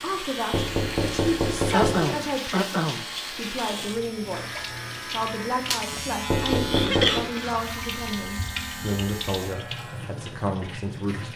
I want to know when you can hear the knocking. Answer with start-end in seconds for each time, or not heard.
0.5-2.1, 6.3-7.3.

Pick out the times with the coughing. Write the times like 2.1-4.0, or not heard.
1.7-3.0, 5.9-7.5.